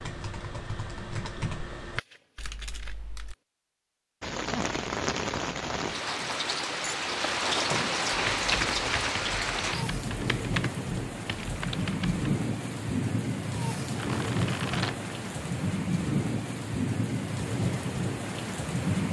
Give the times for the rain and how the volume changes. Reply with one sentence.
The rain can be heard from 4.2 to 19.0 s, at a steady volume.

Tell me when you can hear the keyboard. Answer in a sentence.
You can hear the keyboard from 0.0 to 3.4 s and from 8.1 to 12.1 s.